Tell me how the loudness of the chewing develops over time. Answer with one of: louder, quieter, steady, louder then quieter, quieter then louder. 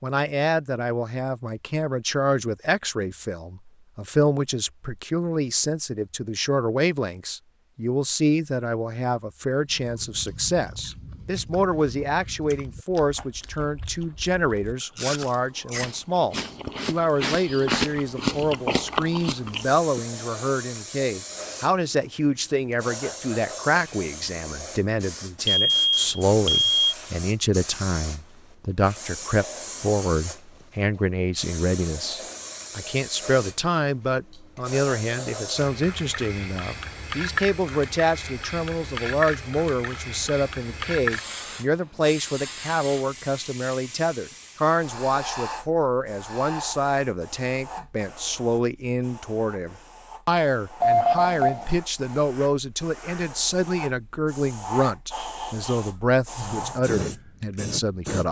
louder.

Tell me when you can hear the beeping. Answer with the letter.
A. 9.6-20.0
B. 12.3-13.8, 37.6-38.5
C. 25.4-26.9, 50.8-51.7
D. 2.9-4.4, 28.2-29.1
C.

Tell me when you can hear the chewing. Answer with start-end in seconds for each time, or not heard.
9.6-20.0.